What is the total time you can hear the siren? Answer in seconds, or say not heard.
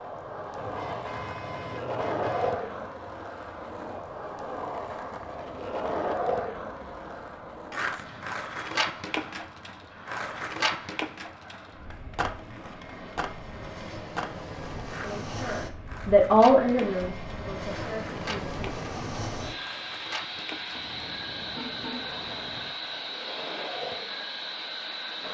not heard.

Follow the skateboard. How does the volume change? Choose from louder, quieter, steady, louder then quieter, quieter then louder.
quieter.